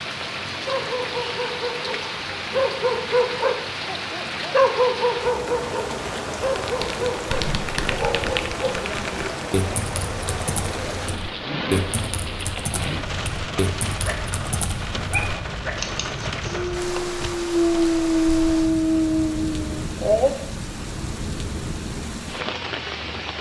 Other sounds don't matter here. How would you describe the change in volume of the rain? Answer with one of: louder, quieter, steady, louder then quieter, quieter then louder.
steady.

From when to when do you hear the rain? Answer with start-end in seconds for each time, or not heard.
0.0-23.3.